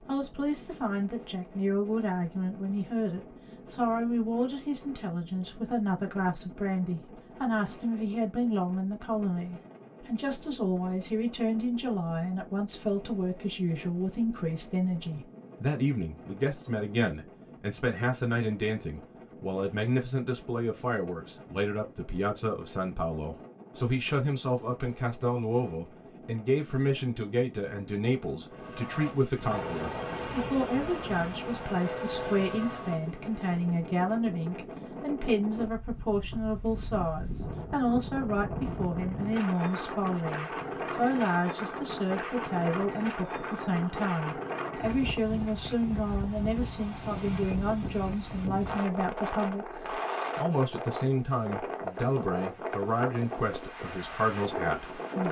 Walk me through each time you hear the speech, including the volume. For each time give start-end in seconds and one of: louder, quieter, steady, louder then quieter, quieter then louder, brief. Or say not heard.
0.1-55.2 steady.